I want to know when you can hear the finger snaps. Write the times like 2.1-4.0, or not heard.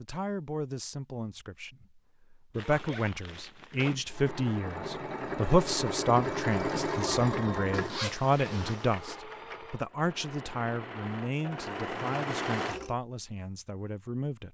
not heard.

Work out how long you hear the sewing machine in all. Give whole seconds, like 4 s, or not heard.
9 s.